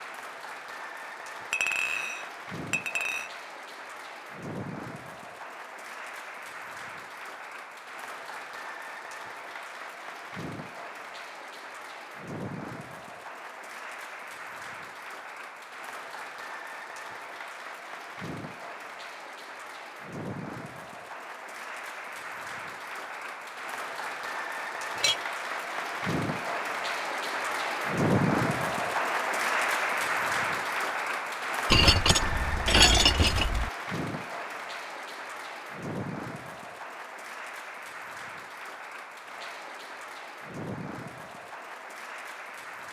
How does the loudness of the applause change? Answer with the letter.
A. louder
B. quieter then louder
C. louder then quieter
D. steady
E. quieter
C.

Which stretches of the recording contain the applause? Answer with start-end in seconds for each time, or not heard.
0.0-42.8.